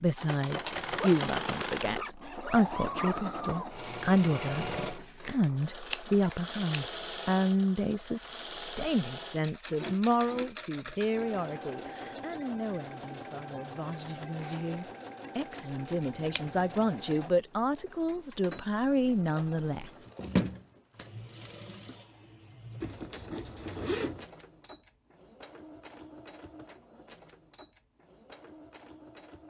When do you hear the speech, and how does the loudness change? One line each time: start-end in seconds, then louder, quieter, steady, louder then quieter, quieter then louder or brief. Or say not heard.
0.0-19.9 quieter then louder.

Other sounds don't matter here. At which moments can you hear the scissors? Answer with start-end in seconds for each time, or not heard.
5.2-6.8, 16.0-16.8, 20.1-21.6.